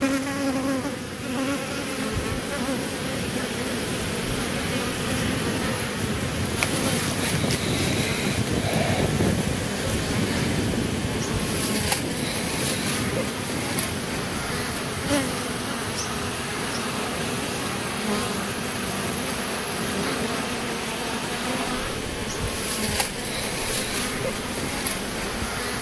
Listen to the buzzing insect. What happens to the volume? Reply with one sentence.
The loudness of the buzzing insect stays about the same.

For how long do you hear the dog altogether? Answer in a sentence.
You can't hear the dog here.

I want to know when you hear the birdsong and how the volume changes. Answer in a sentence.
You can't hear the birdsong here.